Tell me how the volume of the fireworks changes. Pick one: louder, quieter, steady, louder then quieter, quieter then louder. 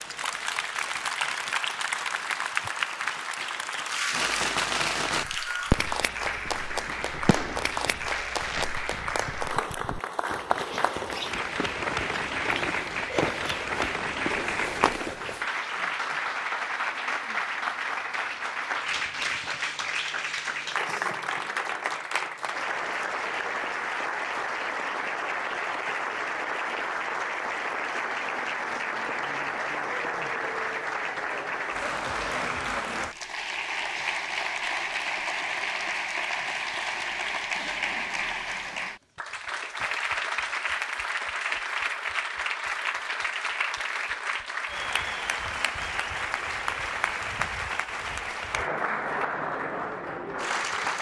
louder then quieter.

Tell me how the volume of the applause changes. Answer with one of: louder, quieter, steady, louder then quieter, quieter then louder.
steady.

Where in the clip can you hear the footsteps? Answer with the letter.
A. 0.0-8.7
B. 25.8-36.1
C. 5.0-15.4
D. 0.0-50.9
C.